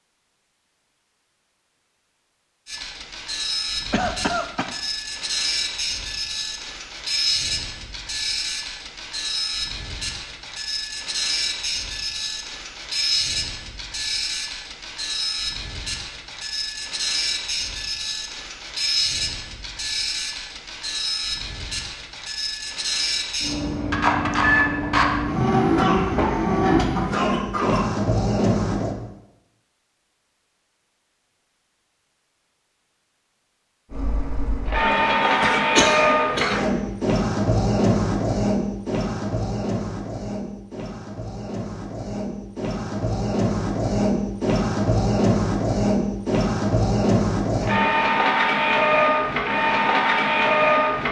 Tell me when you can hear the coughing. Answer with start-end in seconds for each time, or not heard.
3.9-4.8, 25.8-27.9, 35.0-36.6.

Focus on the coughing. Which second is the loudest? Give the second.
36 s.